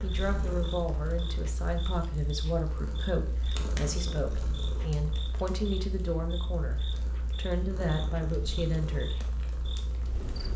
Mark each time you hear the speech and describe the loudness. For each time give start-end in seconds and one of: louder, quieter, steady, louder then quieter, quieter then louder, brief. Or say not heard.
0.0-9.2 steady.